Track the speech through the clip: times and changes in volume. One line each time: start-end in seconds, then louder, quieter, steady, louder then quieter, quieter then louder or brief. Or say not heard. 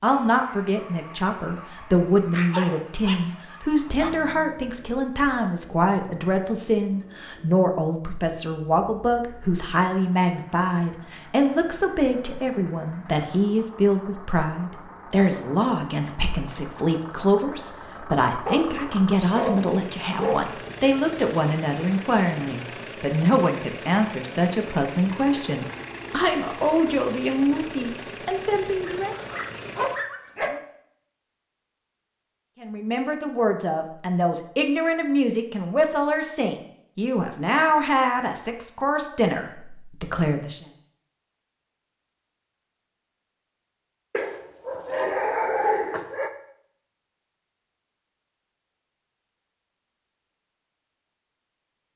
0.0-29.1 steady
32.6-40.6 steady.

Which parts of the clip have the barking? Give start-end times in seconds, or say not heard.
2.3-4.1, 18.4-20.4, 28.9-30.6, 44.1-46.3.